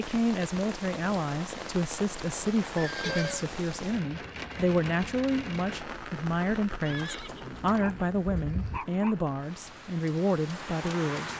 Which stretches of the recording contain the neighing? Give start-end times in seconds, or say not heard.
2.8-3.5, 6.8-8.8.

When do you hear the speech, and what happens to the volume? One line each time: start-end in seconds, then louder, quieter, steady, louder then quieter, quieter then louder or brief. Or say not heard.
0.0-11.3 steady.